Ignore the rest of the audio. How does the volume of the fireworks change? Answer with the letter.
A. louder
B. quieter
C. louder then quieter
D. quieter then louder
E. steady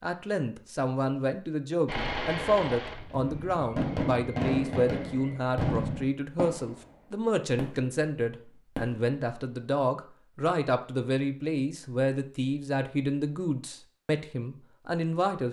C.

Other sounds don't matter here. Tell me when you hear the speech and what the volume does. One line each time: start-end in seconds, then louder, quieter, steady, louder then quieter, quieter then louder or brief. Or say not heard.
0.0-15.4 steady.